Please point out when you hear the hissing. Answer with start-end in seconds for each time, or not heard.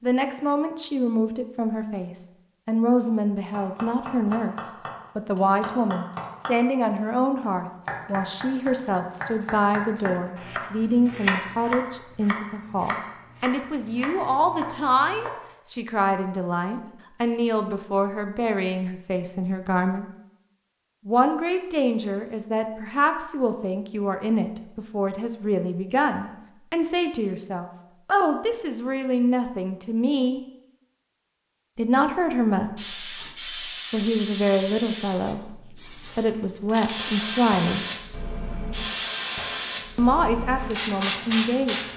32.8-41.9.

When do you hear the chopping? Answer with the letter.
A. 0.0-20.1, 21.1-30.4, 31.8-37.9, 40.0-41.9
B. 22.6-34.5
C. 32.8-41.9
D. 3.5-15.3
D.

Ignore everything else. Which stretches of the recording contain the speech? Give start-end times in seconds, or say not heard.
0.0-20.1, 21.1-30.4, 31.8-37.9, 40.0-41.9.